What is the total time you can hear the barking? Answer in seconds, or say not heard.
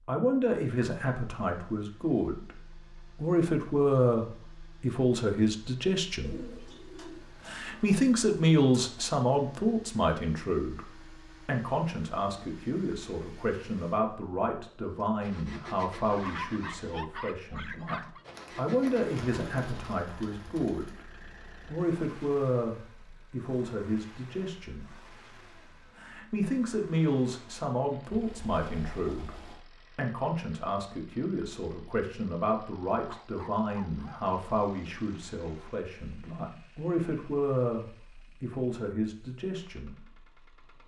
3 s.